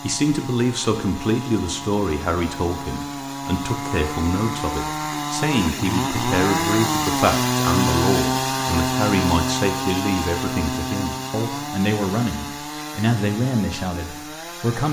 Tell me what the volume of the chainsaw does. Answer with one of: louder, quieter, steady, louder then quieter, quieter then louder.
louder then quieter.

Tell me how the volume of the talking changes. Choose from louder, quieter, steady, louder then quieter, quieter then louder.
steady.